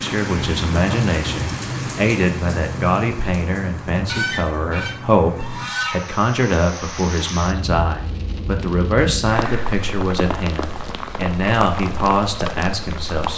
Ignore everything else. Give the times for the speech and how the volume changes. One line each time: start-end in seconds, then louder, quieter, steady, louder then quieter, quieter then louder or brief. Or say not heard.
0.0-13.3 steady.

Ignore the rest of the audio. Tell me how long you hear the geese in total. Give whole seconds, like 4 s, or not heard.
2 s.